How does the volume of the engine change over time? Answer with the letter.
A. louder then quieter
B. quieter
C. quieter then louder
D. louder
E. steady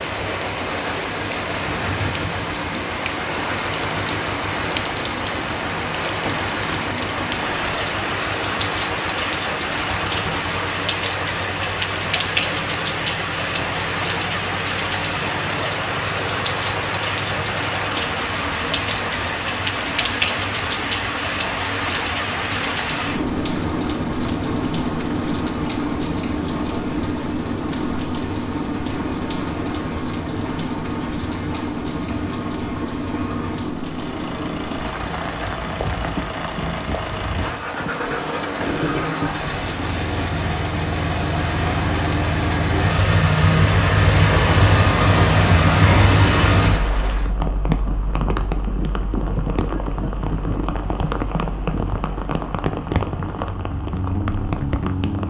D.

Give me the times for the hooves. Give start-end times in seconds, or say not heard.
not heard.